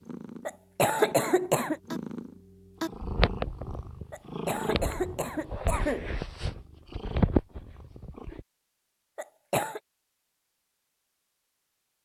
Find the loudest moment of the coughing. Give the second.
1 s.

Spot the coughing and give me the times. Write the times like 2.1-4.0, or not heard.
0.5-1.8, 4.1-6.1, 9.2-9.8.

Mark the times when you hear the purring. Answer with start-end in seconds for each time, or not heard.
0.0-8.4.